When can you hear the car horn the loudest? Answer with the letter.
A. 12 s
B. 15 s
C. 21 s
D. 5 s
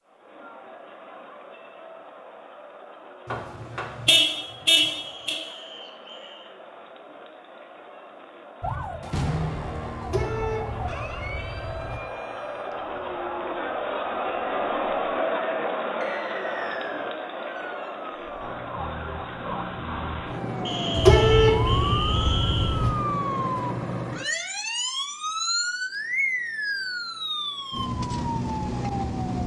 C.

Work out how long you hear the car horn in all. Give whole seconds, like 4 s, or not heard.
6 s.